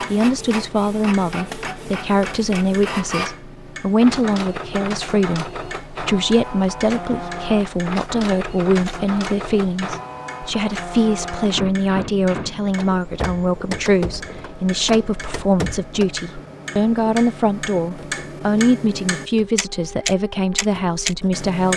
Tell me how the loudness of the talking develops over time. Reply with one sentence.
The loudness of the talking stays about the same.